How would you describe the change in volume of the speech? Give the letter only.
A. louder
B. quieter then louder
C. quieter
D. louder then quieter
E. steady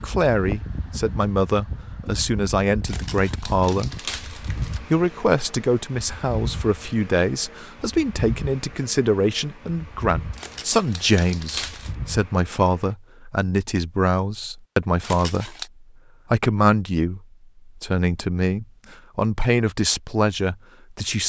E.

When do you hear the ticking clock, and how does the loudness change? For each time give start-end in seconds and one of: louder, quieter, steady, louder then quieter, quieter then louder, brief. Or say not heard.
not heard.